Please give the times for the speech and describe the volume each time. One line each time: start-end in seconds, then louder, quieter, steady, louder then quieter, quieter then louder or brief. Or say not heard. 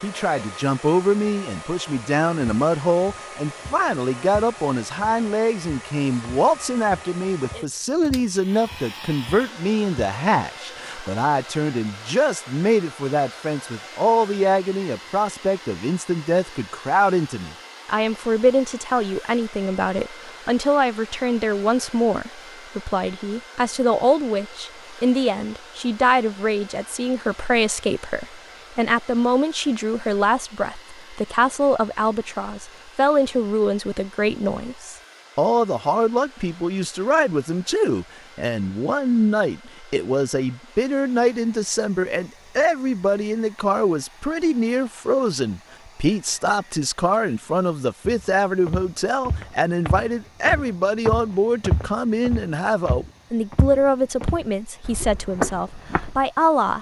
0.0-56.7 steady.